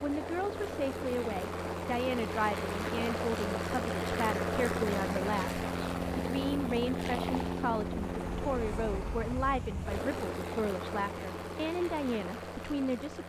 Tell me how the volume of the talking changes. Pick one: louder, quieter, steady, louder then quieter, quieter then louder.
steady.